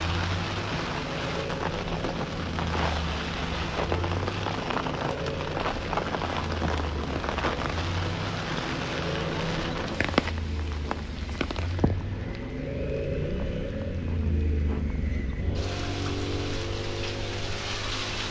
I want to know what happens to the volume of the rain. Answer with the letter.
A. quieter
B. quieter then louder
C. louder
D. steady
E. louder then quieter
A.